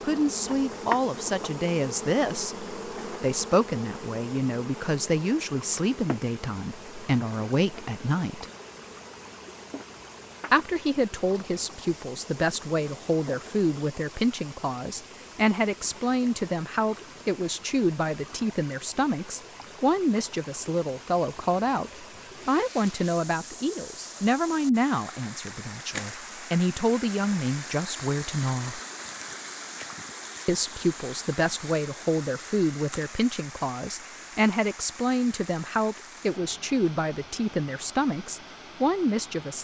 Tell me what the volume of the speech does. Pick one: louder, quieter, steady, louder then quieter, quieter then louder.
steady.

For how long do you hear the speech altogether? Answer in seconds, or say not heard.
36 s.